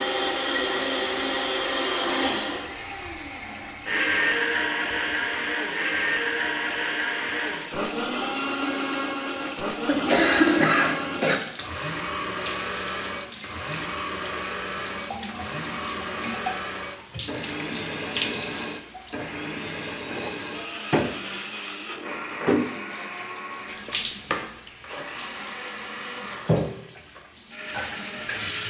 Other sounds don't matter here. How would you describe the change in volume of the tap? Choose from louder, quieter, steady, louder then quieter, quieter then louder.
louder.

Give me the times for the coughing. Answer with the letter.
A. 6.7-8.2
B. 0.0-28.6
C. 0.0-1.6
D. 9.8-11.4
D.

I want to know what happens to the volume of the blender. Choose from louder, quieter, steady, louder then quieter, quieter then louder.
quieter.